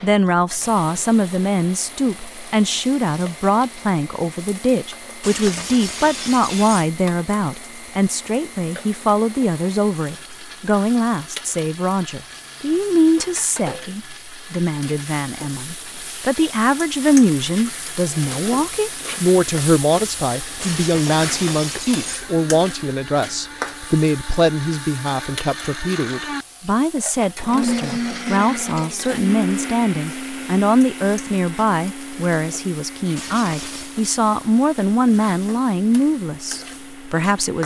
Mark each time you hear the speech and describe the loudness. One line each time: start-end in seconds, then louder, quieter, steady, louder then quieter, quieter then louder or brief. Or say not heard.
0.0-37.6 steady.